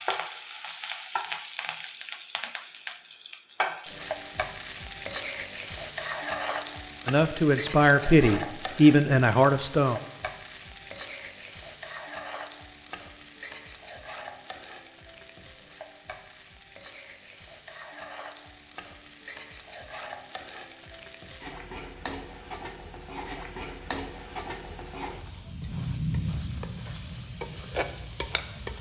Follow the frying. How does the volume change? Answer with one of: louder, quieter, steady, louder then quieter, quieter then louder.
quieter then louder.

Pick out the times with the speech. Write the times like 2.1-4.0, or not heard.
7.0-10.0.